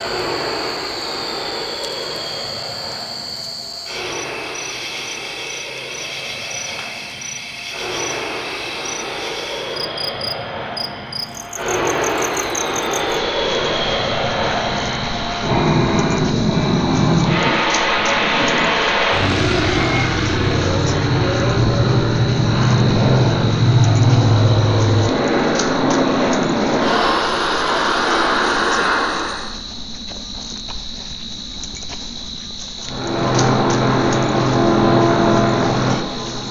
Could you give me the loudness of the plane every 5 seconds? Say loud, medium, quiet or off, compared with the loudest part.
quiet, quiet, medium, loud, loud, loud, loud, loud.